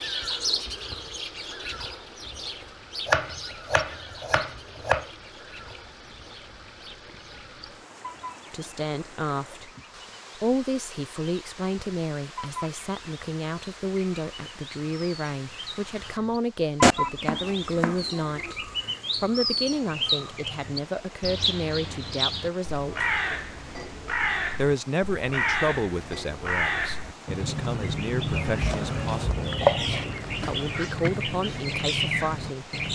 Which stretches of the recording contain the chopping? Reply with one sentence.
The chopping can be heard from 3.0 to 5.0 s, from 16.8 to 18.5 s and from 28.3 to 30.1 s.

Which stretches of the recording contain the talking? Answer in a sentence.
The talking can be heard from 8.5 to 9.7 s, from 10.3 to 23.1 s, from 24.6 to 29.6 s and from 30.4 to 32.7 s.